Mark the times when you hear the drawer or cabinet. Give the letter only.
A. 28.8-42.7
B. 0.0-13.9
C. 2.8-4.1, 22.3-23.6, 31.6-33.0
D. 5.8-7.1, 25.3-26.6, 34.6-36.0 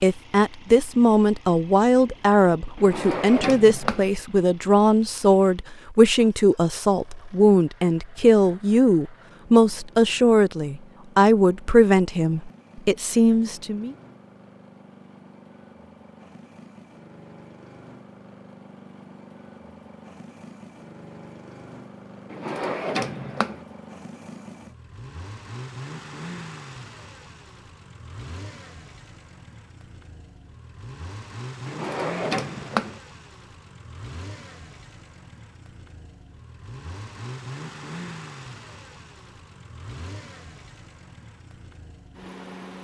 C.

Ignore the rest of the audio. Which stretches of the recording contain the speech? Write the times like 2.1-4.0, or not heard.
0.0-13.9.